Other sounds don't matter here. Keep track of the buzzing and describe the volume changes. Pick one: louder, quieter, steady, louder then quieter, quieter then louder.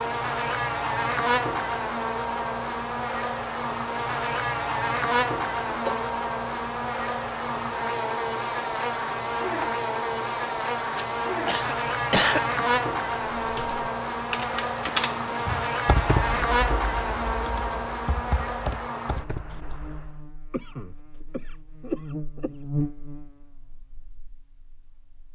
quieter.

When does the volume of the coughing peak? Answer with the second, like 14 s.
12 s.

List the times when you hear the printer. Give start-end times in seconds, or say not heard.
not heard.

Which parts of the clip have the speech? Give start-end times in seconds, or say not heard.
not heard.